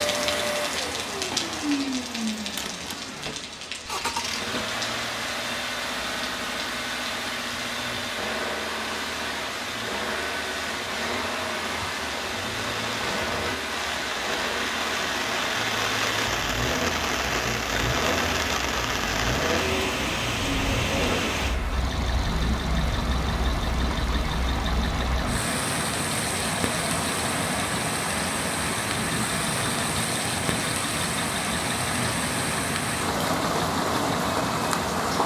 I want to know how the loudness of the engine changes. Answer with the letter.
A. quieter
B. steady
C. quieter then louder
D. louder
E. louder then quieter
B.